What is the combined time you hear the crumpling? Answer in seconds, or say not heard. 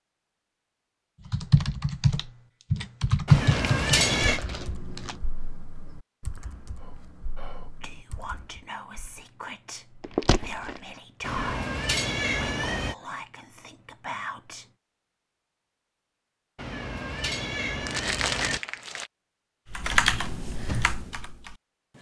4 s.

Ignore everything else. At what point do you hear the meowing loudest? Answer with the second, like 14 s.
4 s.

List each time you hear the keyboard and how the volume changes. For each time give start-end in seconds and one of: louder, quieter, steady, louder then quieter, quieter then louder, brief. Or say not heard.
1.2-8.7 louder then quieter
19.7-21.6 brief.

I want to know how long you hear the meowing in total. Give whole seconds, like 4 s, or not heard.
5 s.